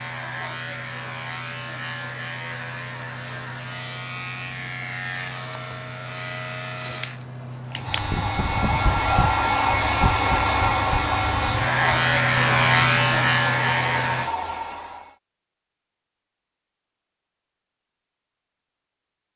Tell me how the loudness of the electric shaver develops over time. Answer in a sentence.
The volume of the electric shaver goes up.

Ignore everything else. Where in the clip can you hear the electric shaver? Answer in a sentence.
The electric shaver can be heard from 0.0 to 14.3 s.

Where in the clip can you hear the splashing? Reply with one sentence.
The splashing can't be heard in this clip.